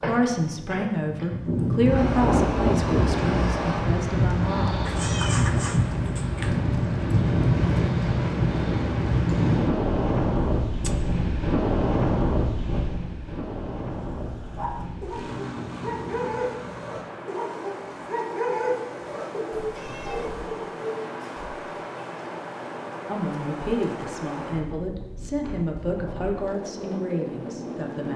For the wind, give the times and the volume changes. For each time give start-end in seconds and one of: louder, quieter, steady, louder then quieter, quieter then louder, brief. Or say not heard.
0.2-28.1 quieter.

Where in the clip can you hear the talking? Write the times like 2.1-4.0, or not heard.
0.0-4.8, 23.1-28.1.